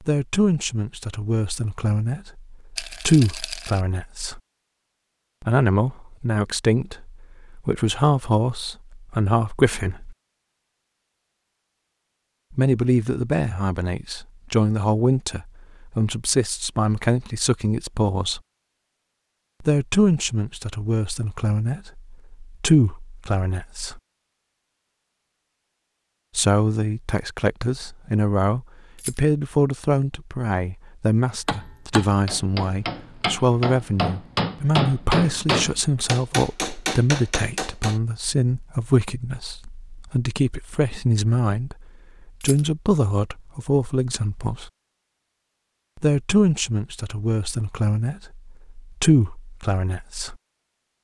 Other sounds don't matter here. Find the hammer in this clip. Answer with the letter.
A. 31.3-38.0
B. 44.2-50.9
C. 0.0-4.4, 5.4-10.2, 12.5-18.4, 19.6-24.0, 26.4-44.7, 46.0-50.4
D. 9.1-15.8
A.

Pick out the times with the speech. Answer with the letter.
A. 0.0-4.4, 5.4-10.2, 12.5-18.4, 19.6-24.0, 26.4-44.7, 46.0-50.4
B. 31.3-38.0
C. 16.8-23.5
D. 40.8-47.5
A.